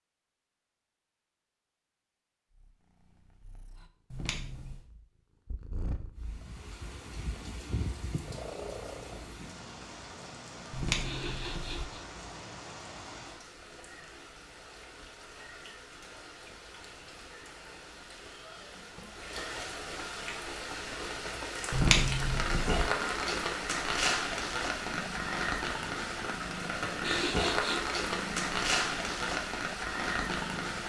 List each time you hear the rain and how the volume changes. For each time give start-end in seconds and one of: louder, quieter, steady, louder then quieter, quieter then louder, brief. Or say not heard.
6.2-30.8 louder.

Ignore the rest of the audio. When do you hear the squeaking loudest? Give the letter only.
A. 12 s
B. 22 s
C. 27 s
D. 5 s
B.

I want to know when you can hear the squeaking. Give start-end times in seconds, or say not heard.
4.1-4.8, 10.7-11.8, 21.7-22.9.